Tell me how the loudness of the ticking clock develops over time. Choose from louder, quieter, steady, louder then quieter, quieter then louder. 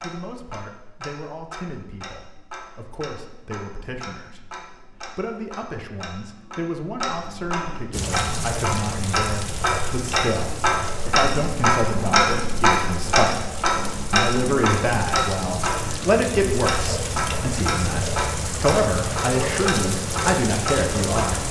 louder then quieter.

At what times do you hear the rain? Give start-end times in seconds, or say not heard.
7.9-21.4.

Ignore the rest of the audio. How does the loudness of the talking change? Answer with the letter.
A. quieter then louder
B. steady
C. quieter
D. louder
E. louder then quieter
D.